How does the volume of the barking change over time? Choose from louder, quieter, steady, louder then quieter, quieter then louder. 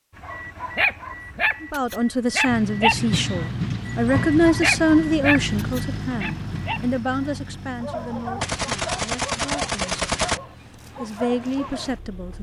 quieter.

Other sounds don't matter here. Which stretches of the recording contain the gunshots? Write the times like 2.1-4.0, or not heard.
8.4-10.4.